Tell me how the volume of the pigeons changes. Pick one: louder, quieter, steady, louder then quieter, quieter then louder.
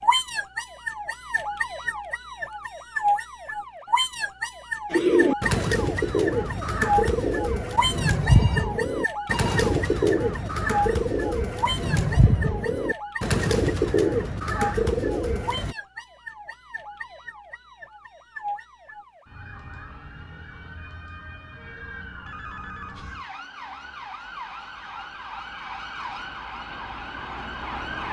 steady.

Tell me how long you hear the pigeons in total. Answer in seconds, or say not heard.
11 s.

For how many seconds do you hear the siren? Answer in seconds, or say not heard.
28 s.